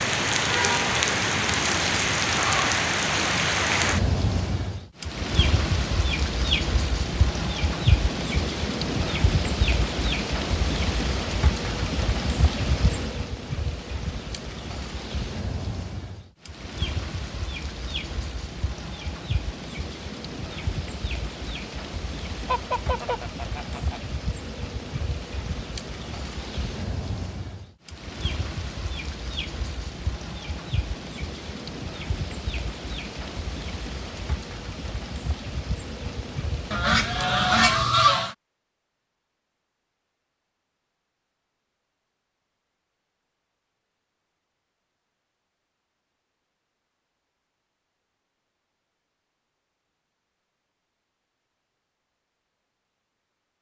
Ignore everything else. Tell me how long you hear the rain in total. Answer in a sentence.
You can hear the rain for 38 seconds altogether.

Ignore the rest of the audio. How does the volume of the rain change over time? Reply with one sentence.
The loudness of the rain goes down.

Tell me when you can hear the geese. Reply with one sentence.
You can hear the geese from 22.4 to 24.0 s and from 36.7 to 38.4 s.